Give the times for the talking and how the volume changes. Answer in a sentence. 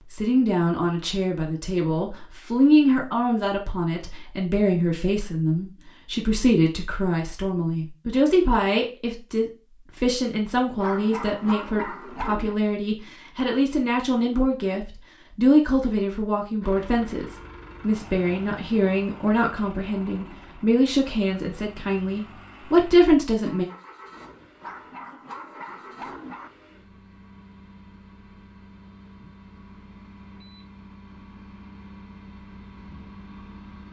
You can hear the talking from 0.1 to 23.6 s, at a steady volume.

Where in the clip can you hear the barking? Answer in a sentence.
You can hear the barking from 10.8 to 12.6 s and from 24.6 to 26.5 s.